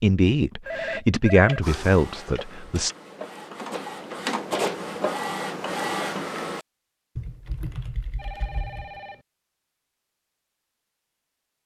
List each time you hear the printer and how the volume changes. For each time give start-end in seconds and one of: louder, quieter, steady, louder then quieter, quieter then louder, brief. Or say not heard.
1.6-6.7 louder.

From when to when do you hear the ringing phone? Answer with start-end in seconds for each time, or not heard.
0.7-1.6, 8.2-9.2.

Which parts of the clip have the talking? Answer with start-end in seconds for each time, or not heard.
0.0-3.0.